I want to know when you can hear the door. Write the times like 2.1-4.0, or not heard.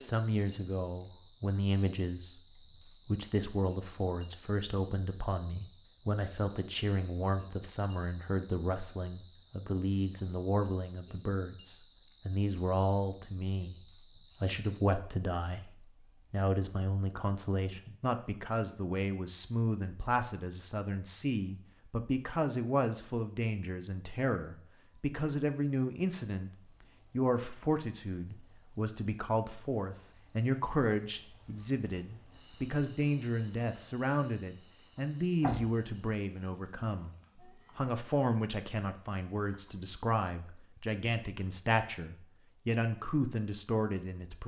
35.0-35.6.